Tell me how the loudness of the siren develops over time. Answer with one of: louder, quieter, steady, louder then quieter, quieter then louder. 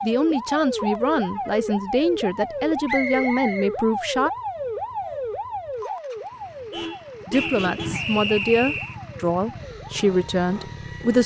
quieter.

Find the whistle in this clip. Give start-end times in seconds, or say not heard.
2.9-3.7, 7.3-8.9.